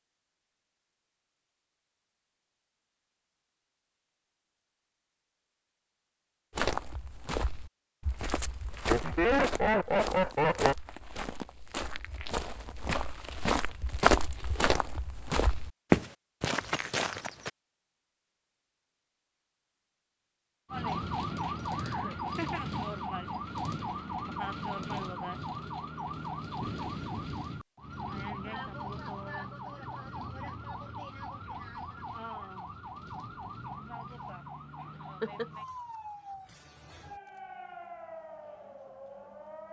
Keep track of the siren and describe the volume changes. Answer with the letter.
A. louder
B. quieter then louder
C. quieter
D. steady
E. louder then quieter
C.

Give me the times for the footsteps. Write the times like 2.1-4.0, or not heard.
6.5-17.5.